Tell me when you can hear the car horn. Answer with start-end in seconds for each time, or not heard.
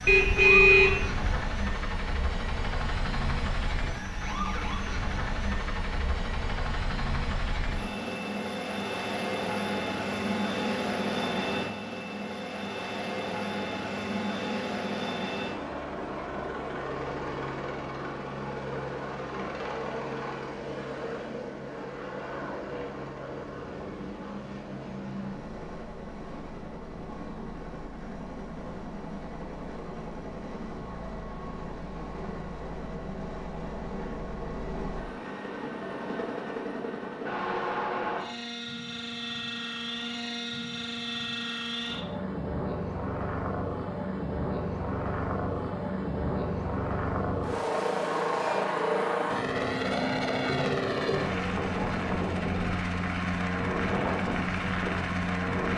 0.1-1.6.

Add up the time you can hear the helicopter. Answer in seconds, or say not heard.
56 s.